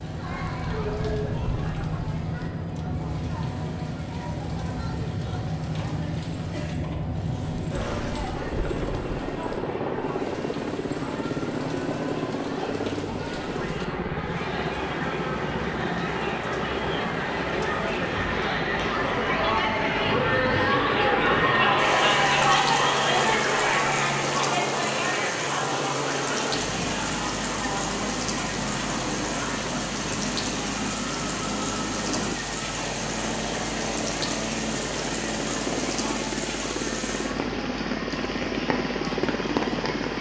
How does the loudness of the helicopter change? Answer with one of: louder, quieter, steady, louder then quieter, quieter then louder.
steady.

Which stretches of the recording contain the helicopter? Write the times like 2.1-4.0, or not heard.
0.0-40.1.